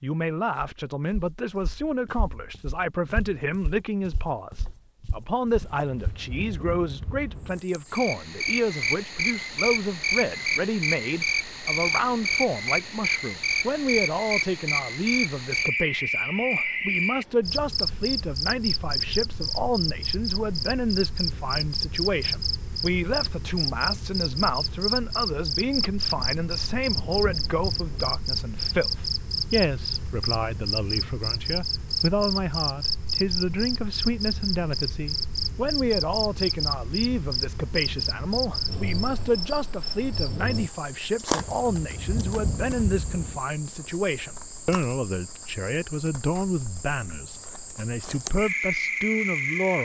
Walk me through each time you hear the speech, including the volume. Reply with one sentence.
You can hear the speech from 0.0 to 49.7 s, at a steady volume.